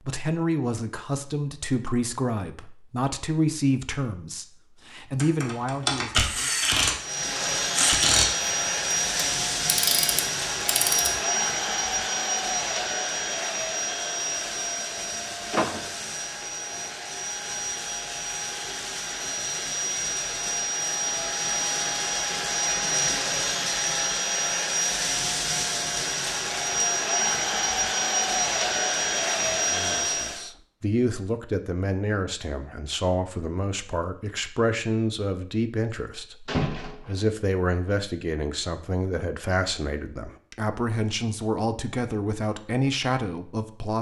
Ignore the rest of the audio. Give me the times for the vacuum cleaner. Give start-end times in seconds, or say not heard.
7.0-30.5.